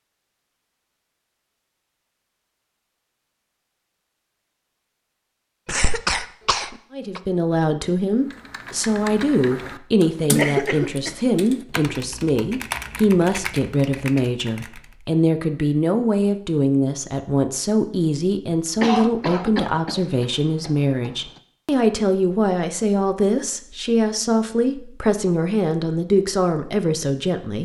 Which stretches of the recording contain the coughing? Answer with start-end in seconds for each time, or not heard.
5.7-7.2, 10.3-11.2, 18.8-21.1.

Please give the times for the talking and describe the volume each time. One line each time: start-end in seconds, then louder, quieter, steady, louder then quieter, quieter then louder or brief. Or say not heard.
6.9-27.6 steady.